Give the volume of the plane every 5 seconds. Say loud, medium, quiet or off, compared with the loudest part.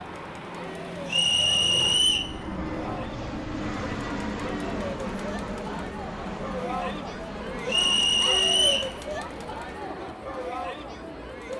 loud, loud, medium.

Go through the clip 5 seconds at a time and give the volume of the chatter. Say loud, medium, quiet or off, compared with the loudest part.
medium, loud, loud.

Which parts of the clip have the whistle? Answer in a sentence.
The whistle can be heard from 1.1 to 2.3 s and from 7.7 to 8.9 s.